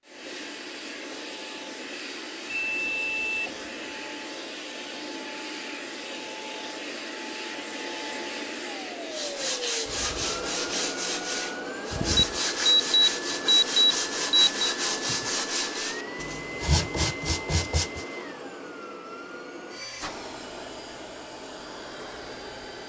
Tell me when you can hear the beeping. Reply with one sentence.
The beeping can be heard from 2.5 to 3.8 s and from 12.2 to 14.5 s.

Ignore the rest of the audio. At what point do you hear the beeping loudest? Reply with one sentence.
The loudest moment of the beeping is at 14 seconds.